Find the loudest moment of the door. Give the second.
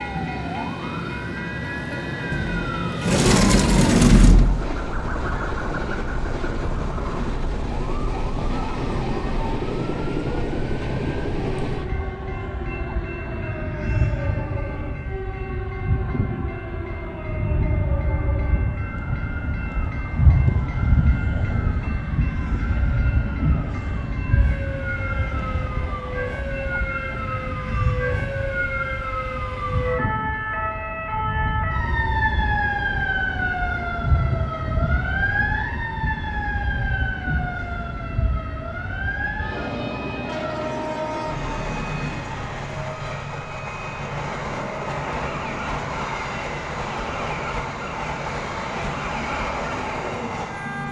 4 s.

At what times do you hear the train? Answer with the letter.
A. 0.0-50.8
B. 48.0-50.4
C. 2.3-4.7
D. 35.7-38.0
A.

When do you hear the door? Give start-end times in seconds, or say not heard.
2.3-4.7.